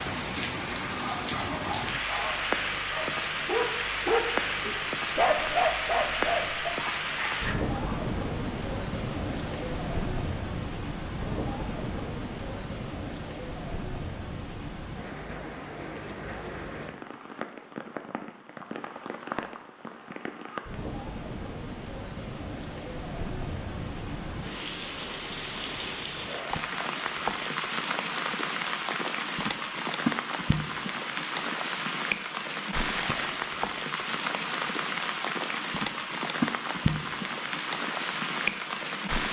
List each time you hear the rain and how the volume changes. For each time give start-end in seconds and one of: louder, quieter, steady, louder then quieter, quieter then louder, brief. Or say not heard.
0.0-39.2 quieter then louder.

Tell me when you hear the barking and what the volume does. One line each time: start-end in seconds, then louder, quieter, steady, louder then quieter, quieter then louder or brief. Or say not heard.
1.0-7.8 louder then quieter.